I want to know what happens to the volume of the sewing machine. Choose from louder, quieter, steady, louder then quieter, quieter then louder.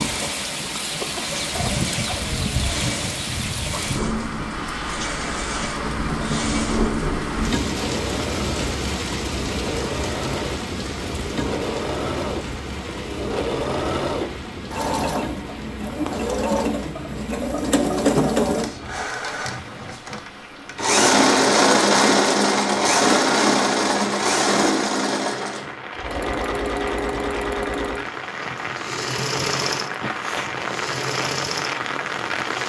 louder then quieter.